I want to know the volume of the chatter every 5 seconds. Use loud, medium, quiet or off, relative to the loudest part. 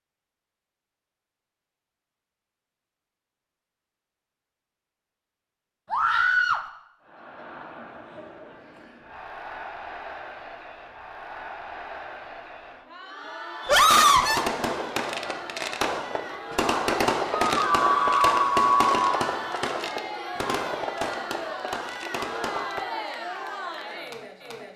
off, medium, medium, loud, loud.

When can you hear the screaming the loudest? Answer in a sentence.
The volume of the screaming peaks at 14 seconds.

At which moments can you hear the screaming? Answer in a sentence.
The screaming can be heard from 5.9 to 6.6 s, from 13.7 to 14.4 s and from 17.3 to 19.0 s.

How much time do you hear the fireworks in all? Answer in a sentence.
You can hear the fireworks for 9 seconds altogether.